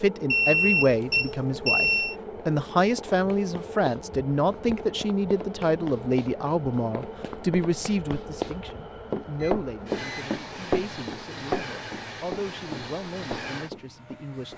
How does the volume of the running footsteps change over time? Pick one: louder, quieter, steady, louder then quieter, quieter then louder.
louder then quieter.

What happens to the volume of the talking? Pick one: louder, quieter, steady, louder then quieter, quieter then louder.
quieter.